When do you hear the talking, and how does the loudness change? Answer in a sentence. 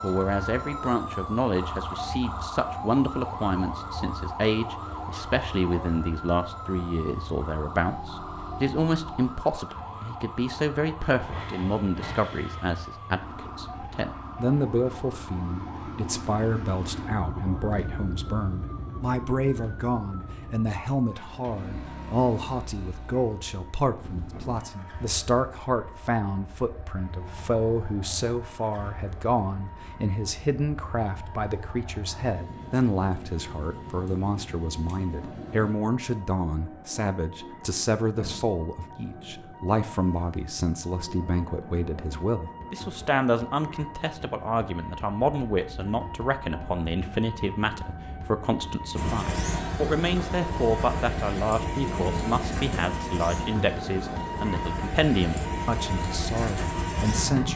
You can hear the talking from 0.0 to 57.5 s, at a steady volume.